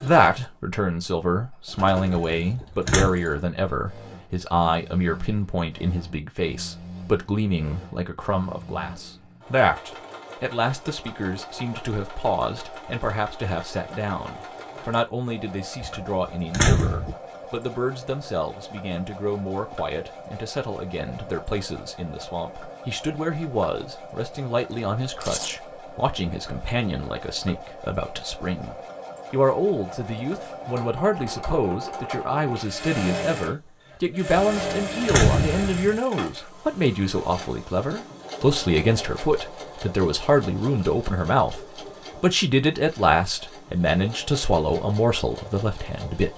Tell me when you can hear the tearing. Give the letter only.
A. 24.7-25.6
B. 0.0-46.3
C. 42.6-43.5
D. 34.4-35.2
A.